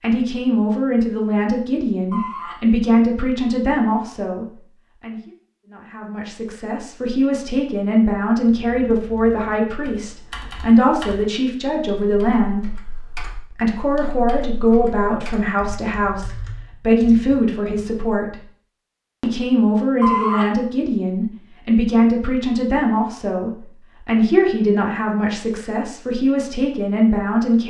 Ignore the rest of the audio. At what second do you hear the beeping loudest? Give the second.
20 s.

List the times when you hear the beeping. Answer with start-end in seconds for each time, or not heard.
2.1-2.6, 20.0-20.5.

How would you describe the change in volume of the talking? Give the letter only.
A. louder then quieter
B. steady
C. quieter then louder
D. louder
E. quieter
B.